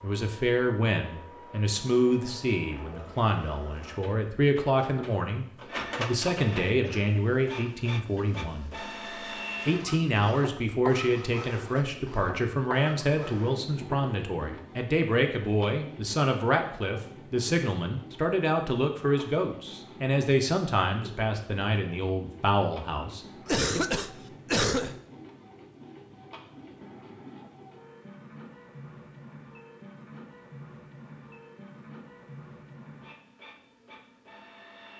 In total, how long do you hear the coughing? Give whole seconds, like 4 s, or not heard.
3 s.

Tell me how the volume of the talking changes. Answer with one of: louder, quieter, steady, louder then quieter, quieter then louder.
steady.